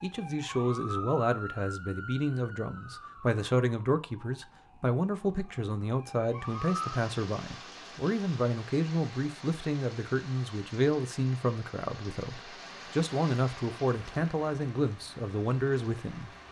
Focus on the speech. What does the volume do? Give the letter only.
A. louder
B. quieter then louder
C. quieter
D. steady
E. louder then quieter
D.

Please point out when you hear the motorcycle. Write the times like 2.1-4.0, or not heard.
not heard.